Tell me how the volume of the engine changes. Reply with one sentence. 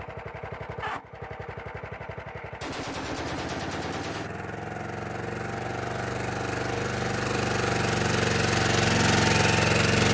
The volume of the engine goes up.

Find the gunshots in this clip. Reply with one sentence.
You can hear the gunshots from 2.6 to 4.3 s.